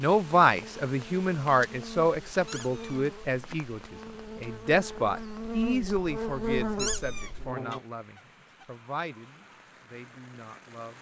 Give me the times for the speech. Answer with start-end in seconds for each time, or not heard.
0.0-10.9.